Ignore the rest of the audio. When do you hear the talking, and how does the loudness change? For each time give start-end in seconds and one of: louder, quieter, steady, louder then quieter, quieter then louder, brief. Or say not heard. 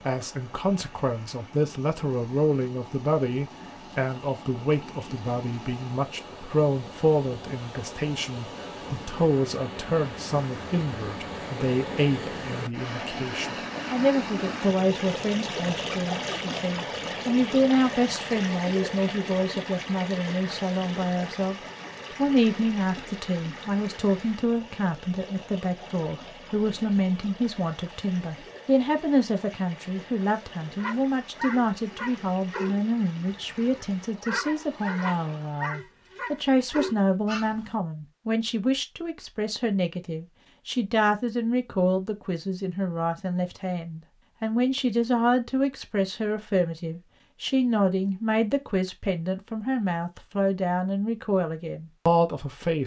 0.1-52.8 steady.